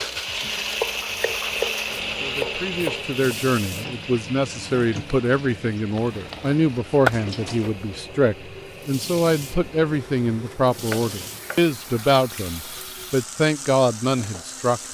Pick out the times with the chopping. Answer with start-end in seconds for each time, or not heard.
0.4-3.1, 6.0-7.2, 10.8-11.8.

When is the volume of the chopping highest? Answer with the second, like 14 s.
7 s.